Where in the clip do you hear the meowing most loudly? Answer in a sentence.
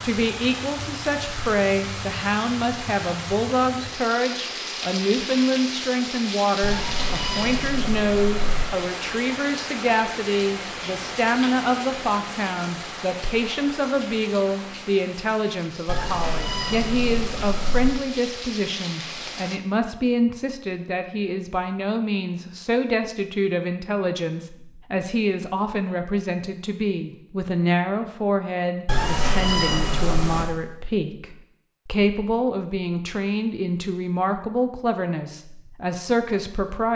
The volume of the meowing peaks at 30 seconds.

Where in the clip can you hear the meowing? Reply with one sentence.
You can hear the meowing from 6.6 to 8.7 s, from 15.8 to 17.9 s and from 28.9 to 30.4 s.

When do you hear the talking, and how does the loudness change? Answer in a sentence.
You can hear the talking from 0.0 to 36.9 s, at a steady volume.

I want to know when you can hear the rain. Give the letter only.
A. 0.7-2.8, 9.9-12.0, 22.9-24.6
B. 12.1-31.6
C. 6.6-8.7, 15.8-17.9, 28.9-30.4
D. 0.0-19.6
D.